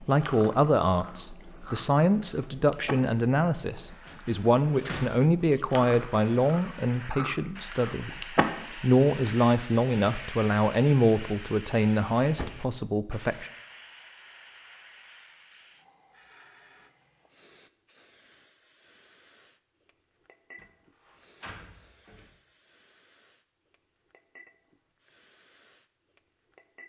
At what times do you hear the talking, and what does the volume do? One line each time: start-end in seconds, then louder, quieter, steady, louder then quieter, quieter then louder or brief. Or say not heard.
0.0-13.5 steady.